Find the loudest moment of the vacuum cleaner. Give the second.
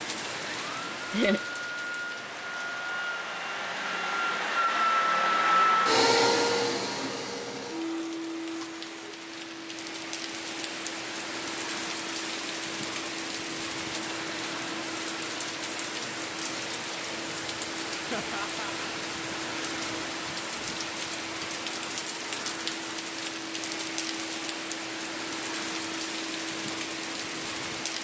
6 s.